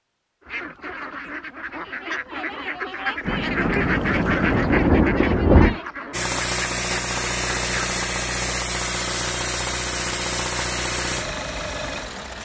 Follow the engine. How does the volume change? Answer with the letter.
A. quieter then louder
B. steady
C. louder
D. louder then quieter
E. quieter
B.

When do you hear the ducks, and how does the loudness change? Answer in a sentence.
The ducks can be heard from 0.4 to 7.9 s, getting louder then quieter.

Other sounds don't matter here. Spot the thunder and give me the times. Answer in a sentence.
You can hear the thunder from 3.2 to 5.8 s.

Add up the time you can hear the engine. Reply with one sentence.
The engine can be heard for 6 seconds in total.